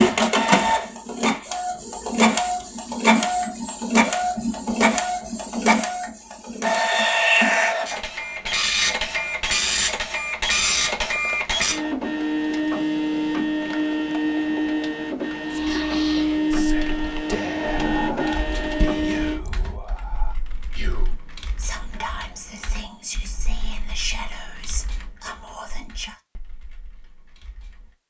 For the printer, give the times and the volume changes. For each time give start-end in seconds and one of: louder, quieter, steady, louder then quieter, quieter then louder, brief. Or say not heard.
0.0-19.4 steady.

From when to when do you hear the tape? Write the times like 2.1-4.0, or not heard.
not heard.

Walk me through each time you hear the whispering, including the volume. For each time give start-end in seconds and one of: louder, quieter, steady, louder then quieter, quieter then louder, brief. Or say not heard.
15.4-26.1 steady.